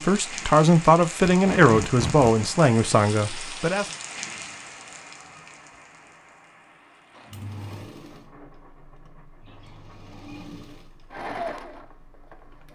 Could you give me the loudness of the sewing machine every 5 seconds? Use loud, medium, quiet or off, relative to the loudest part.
off, medium, loud.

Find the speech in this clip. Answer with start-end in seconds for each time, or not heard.
0.0-3.9.